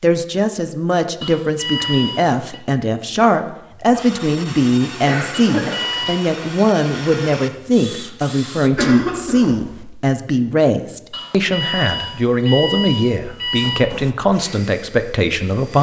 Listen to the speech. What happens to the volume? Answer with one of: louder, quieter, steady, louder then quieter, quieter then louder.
steady.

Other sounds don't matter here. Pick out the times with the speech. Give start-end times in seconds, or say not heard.
0.0-15.7.